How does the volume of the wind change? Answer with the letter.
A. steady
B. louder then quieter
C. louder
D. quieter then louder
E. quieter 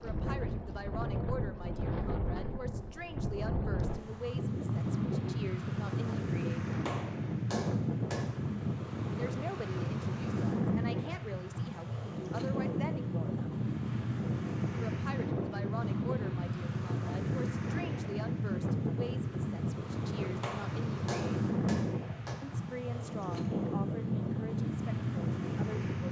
A.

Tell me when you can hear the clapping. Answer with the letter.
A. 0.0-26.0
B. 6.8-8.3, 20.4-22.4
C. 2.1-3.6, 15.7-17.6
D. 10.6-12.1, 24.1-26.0
B.